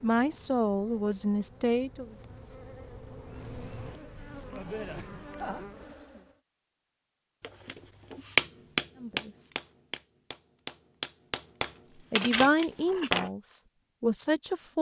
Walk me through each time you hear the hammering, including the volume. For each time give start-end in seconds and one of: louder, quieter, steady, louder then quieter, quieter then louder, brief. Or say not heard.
7.4-13.3 quieter then louder.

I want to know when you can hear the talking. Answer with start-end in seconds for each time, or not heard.
0.0-2.1, 9.0-9.7, 12.1-14.7.